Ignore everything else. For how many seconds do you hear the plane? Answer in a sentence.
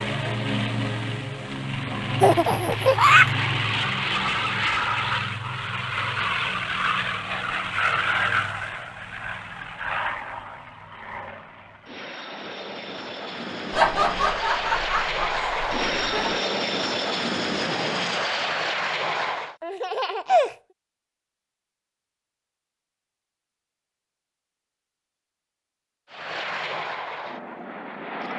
The plane can be heard for 22 seconds in total.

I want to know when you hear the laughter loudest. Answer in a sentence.
The loudest moment of the laughter is at 3 seconds.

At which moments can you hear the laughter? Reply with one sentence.
You can hear the laughter from 2.2 to 3.3 s, from 13.7 to 16.4 s and from 19.6 to 20.6 s.